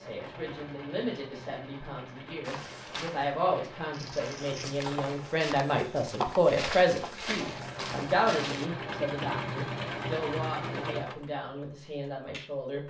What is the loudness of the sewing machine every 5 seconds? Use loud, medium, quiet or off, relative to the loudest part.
medium, loud, loud.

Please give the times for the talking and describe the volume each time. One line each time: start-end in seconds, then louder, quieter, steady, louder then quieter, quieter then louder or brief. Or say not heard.
0.0-12.8 louder then quieter.